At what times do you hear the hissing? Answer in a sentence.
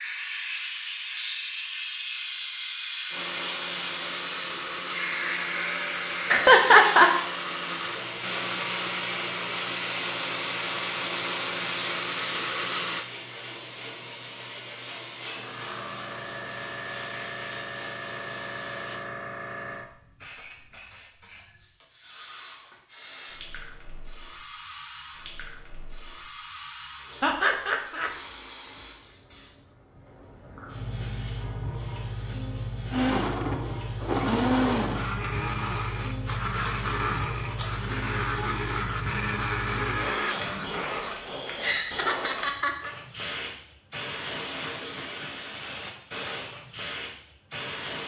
The hissing can be heard from 0.0 to 48.0 s.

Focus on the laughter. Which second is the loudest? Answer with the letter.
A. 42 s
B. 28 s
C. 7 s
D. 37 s
C.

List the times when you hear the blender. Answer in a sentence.
The blender can be heard from 3.1 to 13.1 s and from 32.9 to 41.1 s.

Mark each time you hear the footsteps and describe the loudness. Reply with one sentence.
You can't hear the footsteps here.